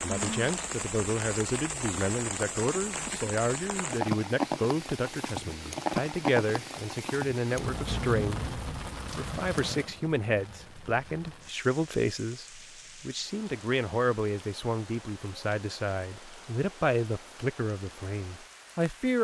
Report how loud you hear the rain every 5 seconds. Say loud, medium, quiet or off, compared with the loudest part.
loud, loud, quiet, quiet.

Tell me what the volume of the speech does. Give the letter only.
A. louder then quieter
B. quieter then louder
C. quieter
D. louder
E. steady
E.